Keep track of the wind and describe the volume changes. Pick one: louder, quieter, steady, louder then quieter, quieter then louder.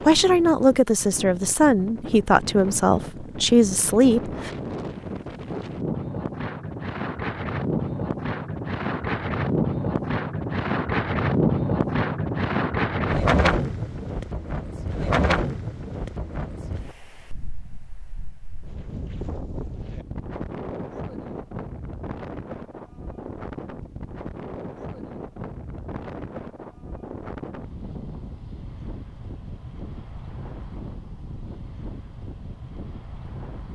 louder then quieter.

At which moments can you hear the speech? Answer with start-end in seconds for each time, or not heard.
0.1-4.5.